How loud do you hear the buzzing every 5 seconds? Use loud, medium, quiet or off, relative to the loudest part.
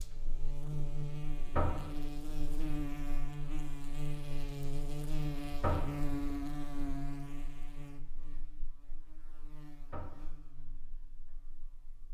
loud, loud, quiet.